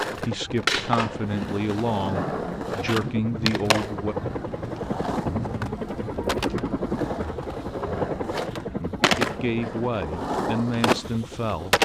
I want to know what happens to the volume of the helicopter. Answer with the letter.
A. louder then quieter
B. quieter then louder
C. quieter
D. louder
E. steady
A.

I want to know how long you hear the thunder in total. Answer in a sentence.
You can hear the thunder for 4 seconds altogether.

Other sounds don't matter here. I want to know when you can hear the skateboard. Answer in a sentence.
You can hear the skateboard from 0.0 to 11.8 s.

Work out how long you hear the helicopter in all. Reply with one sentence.
You can hear the helicopter for 12 seconds altogether.